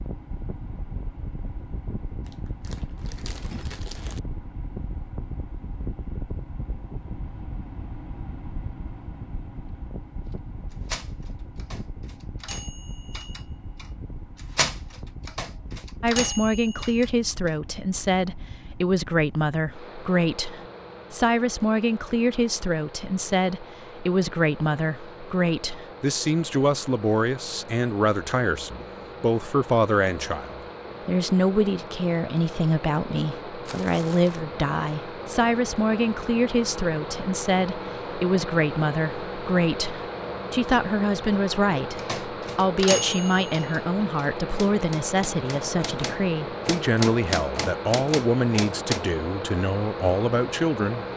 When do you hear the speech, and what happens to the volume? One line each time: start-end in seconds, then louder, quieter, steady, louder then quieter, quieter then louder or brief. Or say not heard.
16.0-51.0 steady.